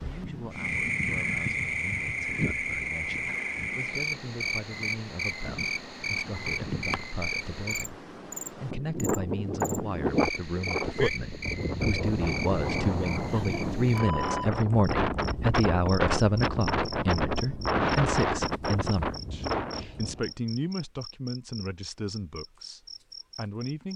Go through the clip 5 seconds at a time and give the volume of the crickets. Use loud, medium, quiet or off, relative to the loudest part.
loud, loud, medium, medium, quiet.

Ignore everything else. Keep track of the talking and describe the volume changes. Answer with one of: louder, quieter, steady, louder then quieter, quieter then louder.
louder then quieter.